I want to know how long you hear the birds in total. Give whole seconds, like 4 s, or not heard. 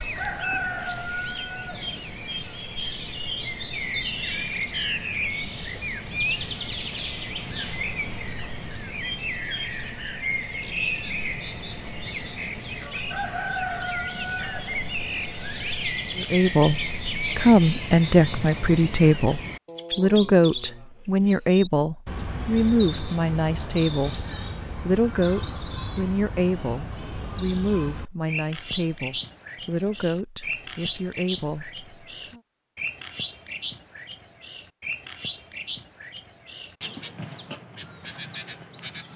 39 s.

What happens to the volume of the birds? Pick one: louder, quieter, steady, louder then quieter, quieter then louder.
quieter.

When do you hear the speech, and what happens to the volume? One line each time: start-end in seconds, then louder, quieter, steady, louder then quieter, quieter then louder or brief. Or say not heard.
16.1-32.4 quieter.